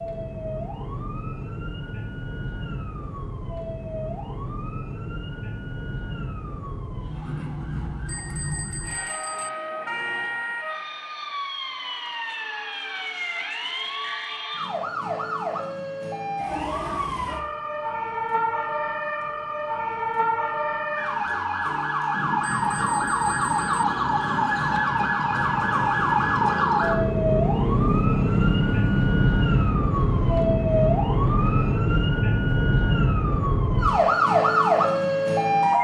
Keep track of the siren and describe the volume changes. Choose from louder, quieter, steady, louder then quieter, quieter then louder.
louder.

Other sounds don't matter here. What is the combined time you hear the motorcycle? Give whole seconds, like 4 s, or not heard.
10 s.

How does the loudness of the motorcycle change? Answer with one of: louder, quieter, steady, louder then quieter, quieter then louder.
louder then quieter.